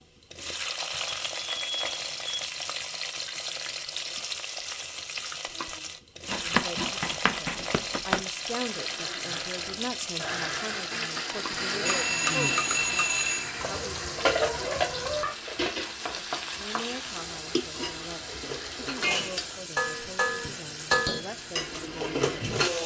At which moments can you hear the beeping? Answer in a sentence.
You can hear the beeping from 1.2 to 2.5 s and from 11.8 to 13.5 s.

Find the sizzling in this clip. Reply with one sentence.
You can hear the sizzling from 0.0 to 22.8 s.